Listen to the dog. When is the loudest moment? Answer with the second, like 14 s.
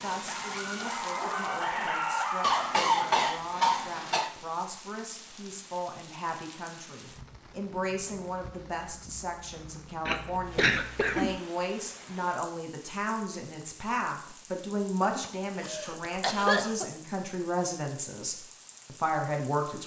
2 s.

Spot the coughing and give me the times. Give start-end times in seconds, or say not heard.
2.4-4.3, 10.1-11.4, 15.1-16.9.